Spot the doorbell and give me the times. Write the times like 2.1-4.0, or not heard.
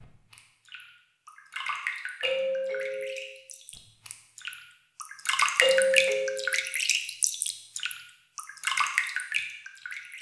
2.2-3.1, 5.6-6.5.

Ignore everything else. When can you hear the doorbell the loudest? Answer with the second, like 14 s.
6 s.